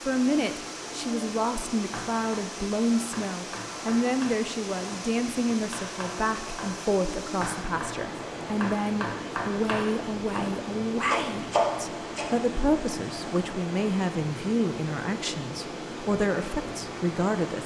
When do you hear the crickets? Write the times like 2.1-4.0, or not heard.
not heard.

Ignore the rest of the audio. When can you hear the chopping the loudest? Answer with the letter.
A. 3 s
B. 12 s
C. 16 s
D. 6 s
B.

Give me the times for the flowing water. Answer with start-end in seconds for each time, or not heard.
0.0-17.6.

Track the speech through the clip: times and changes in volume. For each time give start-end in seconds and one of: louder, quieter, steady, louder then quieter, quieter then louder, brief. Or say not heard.
0.1-17.6 steady.